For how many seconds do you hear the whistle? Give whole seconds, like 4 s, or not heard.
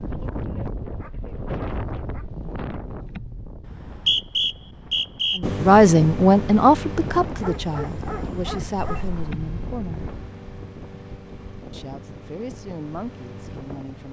2 s.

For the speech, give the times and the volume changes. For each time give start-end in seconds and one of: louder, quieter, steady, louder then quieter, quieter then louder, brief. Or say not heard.
5.3-10.1 quieter
11.7-14.0 brief.